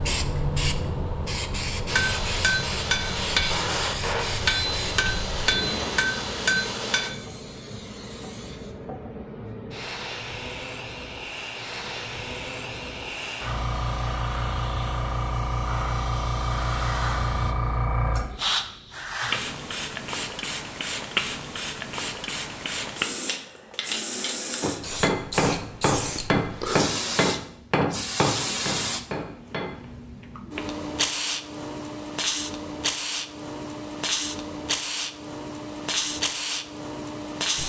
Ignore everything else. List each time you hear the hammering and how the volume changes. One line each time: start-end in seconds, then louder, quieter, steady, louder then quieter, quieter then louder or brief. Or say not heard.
1.9-7.1 steady
24.6-29.9 quieter.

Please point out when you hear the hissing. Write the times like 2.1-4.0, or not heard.
0.0-37.6.